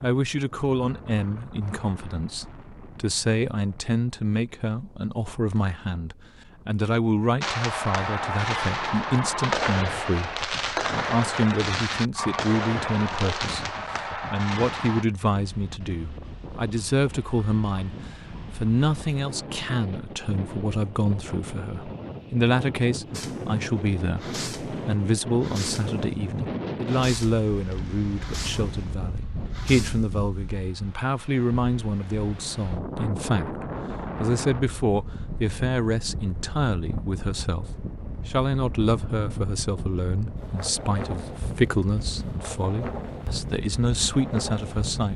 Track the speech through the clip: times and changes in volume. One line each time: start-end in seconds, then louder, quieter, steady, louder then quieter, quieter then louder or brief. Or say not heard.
0.0-17.9 steady
18.6-45.1 steady.